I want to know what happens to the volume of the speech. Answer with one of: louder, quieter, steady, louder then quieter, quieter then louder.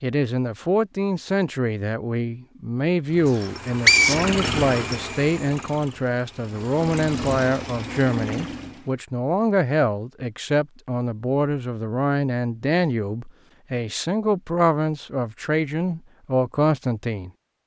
steady.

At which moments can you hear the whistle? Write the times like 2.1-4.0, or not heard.
3.3-5.0.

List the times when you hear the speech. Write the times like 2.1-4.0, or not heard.
0.0-17.3.